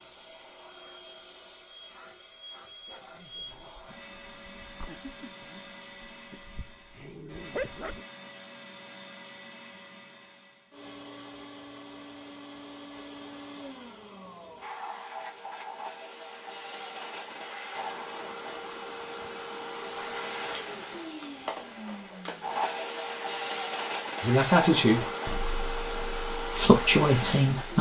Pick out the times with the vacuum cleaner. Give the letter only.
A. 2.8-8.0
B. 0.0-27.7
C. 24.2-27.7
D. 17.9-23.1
B.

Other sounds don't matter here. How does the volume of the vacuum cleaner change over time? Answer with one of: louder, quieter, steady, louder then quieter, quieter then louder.
louder.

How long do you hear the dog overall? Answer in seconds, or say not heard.
5 s.